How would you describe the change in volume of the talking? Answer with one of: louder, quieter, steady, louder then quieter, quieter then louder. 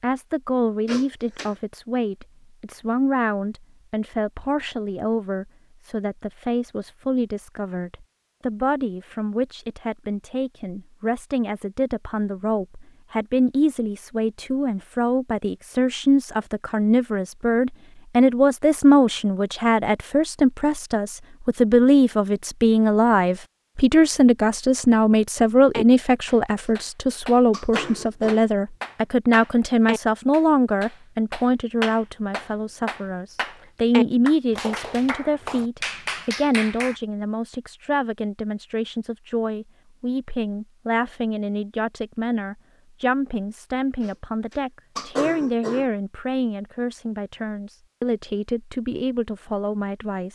louder then quieter.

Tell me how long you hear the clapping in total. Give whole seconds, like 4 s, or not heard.
11 s.